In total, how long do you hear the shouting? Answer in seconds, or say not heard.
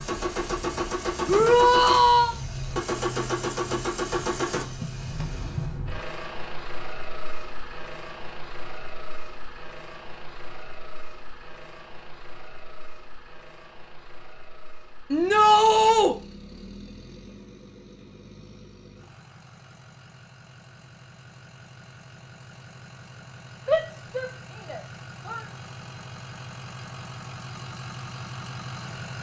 4 s.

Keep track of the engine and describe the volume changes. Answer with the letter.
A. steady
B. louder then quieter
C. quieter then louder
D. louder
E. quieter
C.